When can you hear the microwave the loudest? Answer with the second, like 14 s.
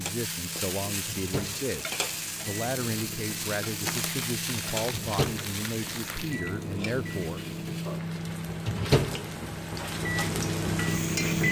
11 s.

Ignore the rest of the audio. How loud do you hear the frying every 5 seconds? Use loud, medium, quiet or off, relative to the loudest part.
loud, medium, loud.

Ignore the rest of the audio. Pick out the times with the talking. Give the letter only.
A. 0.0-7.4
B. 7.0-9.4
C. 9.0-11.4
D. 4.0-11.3
A.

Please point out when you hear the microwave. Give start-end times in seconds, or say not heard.
0.0-11.4.